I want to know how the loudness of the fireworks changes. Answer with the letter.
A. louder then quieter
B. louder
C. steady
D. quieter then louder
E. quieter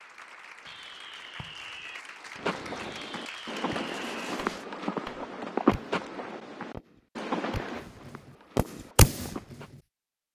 B.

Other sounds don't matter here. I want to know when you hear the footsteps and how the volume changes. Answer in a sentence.
You can hear the footsteps from 2.4 to 9.7 s, getting louder then quieter.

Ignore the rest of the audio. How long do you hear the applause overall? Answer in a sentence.
You can hear the applause for 5 seconds altogether.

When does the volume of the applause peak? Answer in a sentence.
The loudest moment of the applause is at 4 seconds.